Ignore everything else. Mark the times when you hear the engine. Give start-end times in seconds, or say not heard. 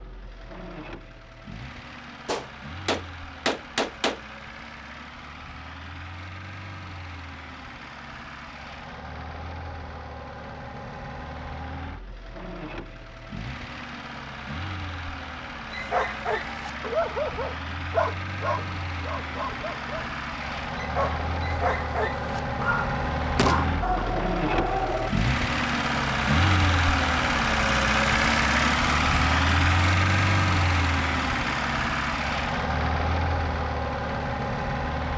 0.0-35.1.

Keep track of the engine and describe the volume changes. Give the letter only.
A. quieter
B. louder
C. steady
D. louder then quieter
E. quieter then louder
B.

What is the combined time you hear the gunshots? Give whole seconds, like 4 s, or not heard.
3 s.